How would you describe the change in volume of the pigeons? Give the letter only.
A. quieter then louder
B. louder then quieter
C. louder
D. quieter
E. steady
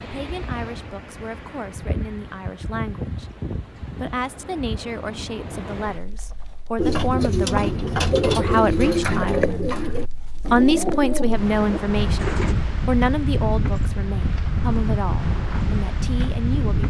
D.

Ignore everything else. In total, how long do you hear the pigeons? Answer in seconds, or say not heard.
6 s.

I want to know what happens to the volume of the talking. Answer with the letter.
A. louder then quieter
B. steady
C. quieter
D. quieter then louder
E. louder
A.